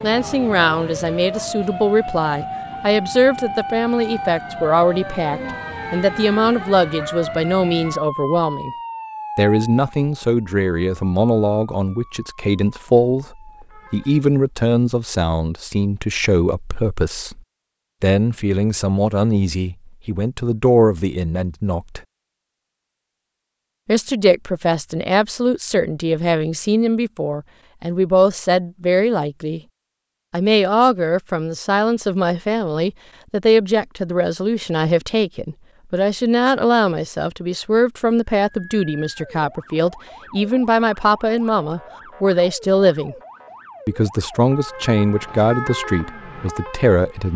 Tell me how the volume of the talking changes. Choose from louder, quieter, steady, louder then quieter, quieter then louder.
steady.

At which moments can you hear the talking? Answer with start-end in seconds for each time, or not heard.
0.0-8.7, 9.3-17.4, 18.0-22.0, 23.9-29.6, 30.3-43.1, 43.9-47.3.